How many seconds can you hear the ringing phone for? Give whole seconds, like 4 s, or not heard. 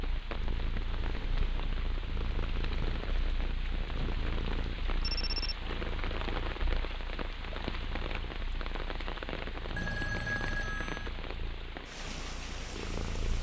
3 s.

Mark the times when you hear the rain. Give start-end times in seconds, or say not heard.
0.0-13.3.